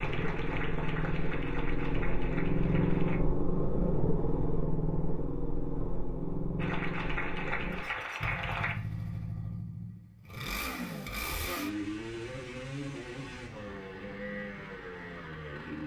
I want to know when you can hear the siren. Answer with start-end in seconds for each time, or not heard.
not heard.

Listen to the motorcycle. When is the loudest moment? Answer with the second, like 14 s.
3 s.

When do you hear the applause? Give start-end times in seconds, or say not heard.
0.0-3.2, 6.5-8.8.